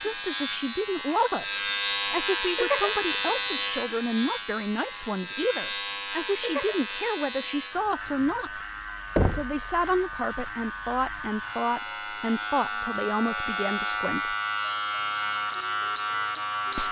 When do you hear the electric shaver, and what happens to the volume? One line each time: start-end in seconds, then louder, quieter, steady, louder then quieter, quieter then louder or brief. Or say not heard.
0.0-16.8 quieter then louder.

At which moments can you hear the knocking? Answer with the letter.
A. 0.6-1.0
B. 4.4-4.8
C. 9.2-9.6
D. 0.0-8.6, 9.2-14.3
C.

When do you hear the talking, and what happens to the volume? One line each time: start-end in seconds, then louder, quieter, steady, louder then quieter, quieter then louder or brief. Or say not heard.
0.0-8.6 steady
9.2-14.3 steady.